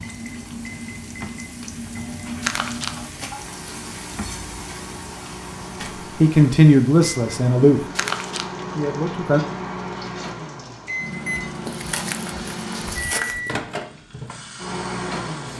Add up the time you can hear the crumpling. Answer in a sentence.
You can hear the crumpling for 3 seconds altogether.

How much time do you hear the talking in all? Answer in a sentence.
The talking can be heard for 2 seconds in total.